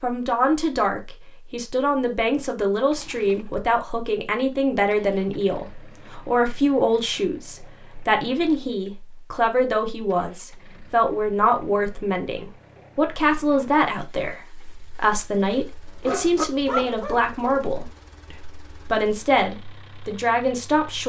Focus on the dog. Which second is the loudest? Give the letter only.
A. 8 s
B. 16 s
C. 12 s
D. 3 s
B.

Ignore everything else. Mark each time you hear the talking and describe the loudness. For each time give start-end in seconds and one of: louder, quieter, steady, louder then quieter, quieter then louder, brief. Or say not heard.
0.0-21.0 steady.